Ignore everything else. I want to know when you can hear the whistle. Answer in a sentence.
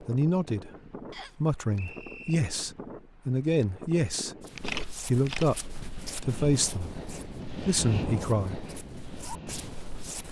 The whistle can be heard from 1.1 to 2.4 s.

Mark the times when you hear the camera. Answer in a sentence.
You can hear the camera from 4.5 to 5.5 s.